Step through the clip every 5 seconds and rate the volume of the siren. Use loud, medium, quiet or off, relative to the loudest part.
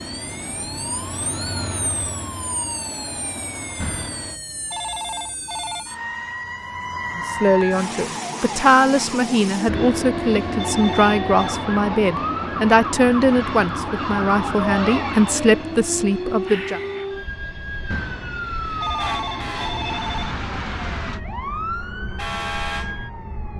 medium, loud, loud, loud, loud.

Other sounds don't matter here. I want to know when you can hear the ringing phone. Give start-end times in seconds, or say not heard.
3.8-5.8, 9.7-11.7, 17.9-20.4.